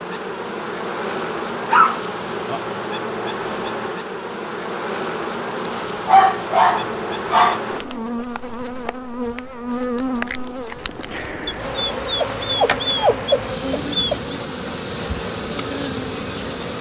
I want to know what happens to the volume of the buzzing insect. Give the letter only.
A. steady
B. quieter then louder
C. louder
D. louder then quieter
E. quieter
A.